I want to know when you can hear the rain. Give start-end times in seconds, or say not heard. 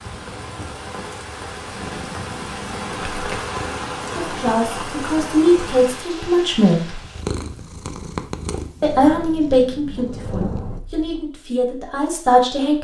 0.0-7.2.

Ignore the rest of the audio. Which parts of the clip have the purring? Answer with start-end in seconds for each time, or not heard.
1.6-4.7, 7.0-11.3.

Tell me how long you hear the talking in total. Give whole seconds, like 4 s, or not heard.
7 s.